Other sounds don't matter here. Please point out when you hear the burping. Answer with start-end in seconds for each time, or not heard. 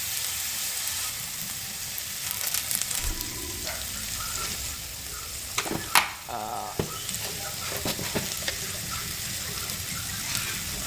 3.0-3.8, 6.2-6.8.